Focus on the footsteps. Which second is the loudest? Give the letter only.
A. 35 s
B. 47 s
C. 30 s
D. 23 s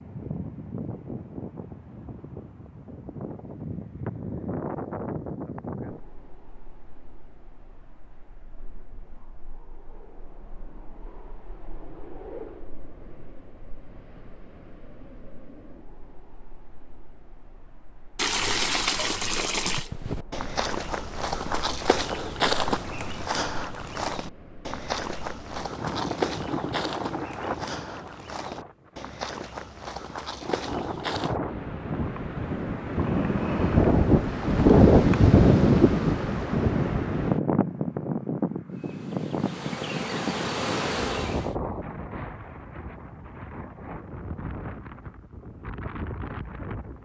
D.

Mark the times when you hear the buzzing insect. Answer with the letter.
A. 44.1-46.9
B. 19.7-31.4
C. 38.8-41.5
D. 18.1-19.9
C.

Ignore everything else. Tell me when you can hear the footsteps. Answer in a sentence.
You can hear the footsteps from 19.7 to 31.4 s.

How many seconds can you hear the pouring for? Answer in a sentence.
The pouring can be heard for 2 seconds in total.